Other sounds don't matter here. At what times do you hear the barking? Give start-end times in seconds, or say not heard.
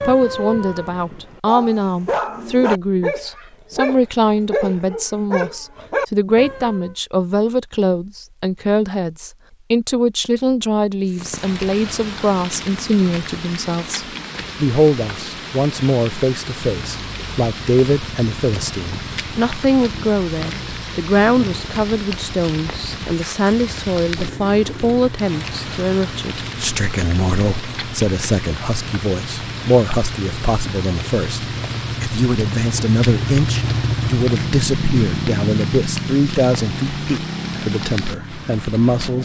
0.0-7.0.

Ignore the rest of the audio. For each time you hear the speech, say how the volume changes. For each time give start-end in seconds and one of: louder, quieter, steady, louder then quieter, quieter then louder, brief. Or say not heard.
0.1-39.2 steady.